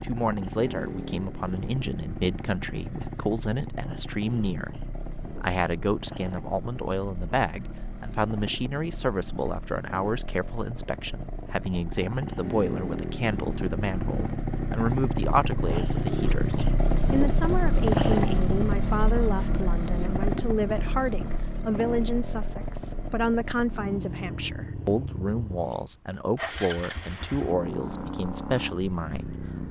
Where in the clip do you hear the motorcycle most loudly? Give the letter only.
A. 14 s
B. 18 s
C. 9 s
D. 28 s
B.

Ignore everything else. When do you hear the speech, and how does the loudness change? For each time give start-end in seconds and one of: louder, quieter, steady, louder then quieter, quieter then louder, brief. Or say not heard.
0.0-29.4 steady.